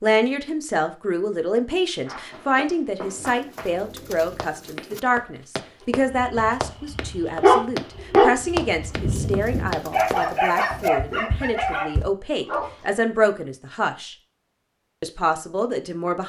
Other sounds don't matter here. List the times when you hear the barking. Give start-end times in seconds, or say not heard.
6.1-12.8.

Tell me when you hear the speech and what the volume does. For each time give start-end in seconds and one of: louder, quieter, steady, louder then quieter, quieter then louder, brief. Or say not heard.
0.0-14.2 steady
15.0-16.2 brief.